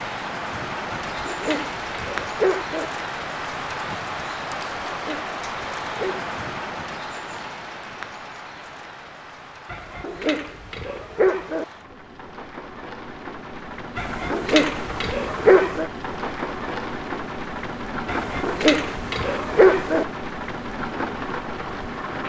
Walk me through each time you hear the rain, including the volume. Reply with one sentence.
You can hear the rain from 0.0 to 22.2 s, getting quieter then louder.